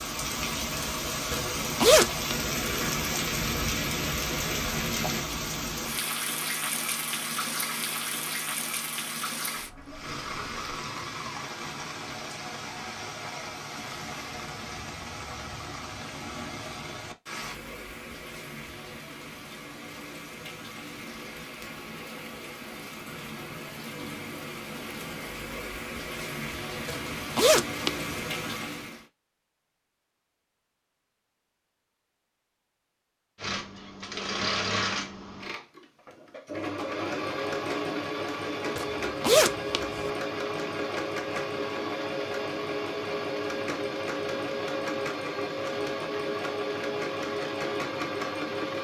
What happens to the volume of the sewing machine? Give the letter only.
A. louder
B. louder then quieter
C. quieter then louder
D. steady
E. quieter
D.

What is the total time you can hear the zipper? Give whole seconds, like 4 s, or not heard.
4 s.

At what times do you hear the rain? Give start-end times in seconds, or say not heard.
0.0-29.1.